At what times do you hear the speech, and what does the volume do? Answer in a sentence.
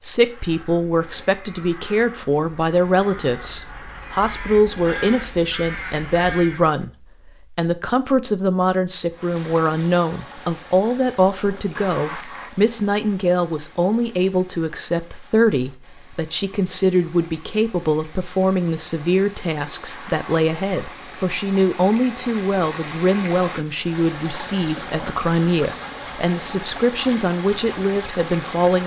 You can hear the speech from 0.0 to 28.8 s, at a steady volume.